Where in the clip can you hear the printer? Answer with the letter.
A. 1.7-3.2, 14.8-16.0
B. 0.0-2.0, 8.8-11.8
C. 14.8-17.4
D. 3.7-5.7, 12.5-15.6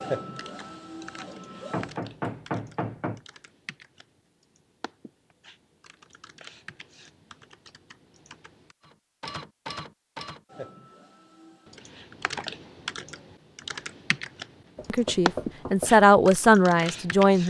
B.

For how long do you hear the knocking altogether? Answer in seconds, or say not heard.
3 s.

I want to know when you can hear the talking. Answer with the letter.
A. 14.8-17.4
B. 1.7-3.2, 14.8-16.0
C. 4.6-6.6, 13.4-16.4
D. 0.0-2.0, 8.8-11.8
A.